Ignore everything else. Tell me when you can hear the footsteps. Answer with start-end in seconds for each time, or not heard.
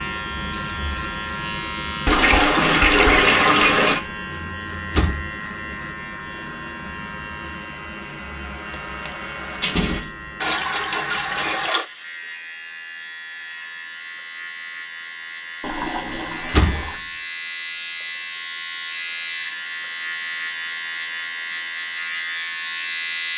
not heard.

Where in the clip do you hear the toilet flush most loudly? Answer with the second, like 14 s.
3 s.